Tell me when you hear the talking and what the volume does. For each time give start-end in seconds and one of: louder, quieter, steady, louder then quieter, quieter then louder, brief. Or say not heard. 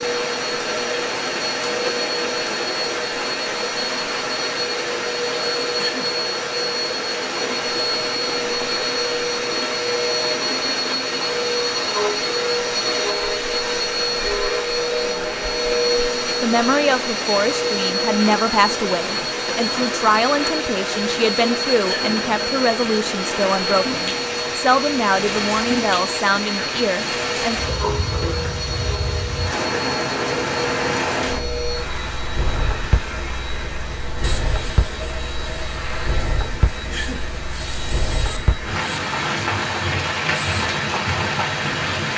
16.4-27.6 steady.